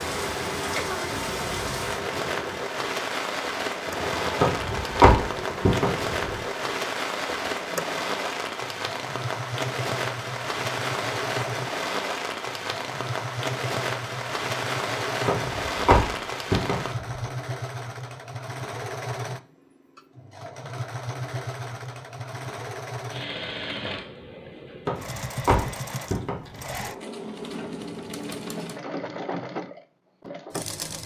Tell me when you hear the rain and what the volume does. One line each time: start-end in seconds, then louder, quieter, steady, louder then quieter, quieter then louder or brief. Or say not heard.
0.0-16.9 steady.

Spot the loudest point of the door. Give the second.
5 s.